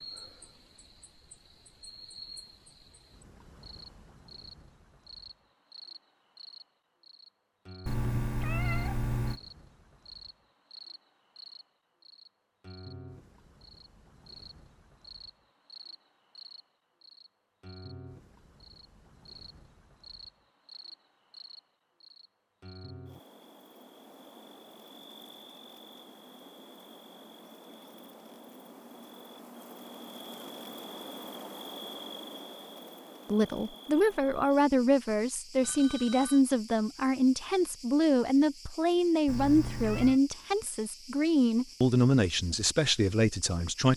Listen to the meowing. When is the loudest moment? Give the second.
9 s.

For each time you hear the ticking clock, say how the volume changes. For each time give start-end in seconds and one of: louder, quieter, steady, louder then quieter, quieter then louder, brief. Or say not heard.
not heard.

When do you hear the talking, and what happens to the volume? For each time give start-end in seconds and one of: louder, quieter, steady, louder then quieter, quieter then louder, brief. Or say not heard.
33.2-43.9 steady.